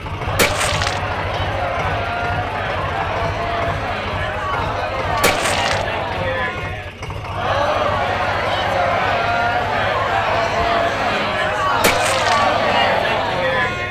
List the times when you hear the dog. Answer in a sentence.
You can't hear the dog here.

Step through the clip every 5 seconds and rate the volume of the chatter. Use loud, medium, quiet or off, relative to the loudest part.
medium, loud, loud.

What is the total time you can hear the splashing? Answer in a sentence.
You can hear the splashing for 2 seconds altogether.